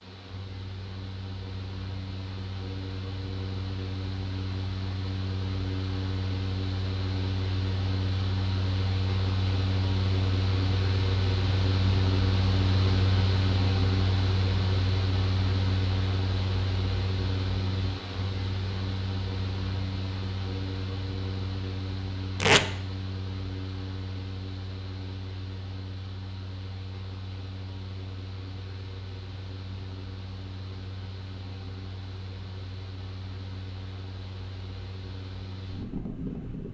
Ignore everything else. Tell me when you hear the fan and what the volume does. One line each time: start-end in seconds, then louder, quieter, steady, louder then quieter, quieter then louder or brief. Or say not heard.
0.0-36.6 louder then quieter.